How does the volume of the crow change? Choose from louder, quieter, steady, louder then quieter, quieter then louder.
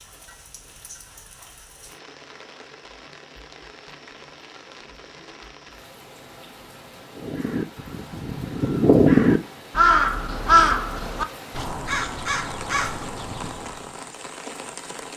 louder then quieter.